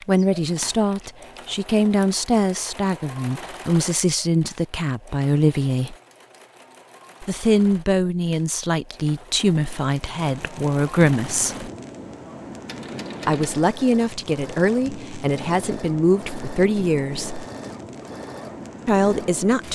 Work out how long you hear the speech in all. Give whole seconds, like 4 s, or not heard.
15 s.